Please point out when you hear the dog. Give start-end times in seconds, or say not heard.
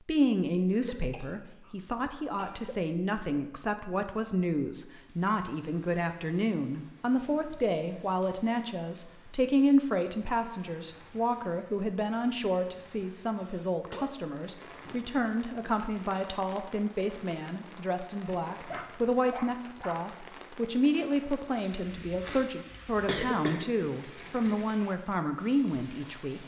18.7-20.0.